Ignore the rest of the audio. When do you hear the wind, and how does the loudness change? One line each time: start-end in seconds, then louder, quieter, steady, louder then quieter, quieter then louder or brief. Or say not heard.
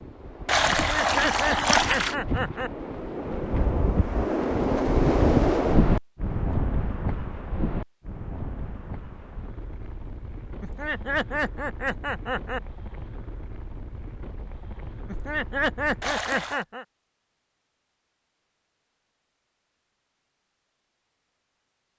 0.0-16.2 louder then quieter.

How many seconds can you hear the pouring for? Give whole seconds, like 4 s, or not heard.
2 s.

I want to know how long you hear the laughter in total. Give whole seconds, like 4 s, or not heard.
6 s.